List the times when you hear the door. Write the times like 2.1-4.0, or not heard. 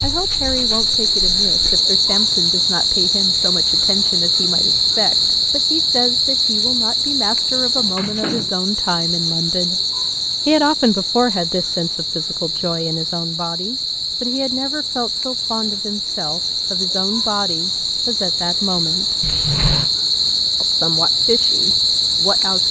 0.0-1.8, 8.0-8.5, 19.2-19.9.